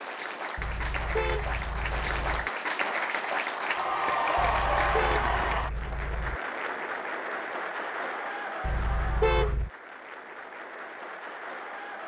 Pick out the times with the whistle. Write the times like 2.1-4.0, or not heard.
not heard.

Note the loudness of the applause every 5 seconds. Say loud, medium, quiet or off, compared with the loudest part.
loud, loud, medium.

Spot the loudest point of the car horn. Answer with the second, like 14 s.
9 s.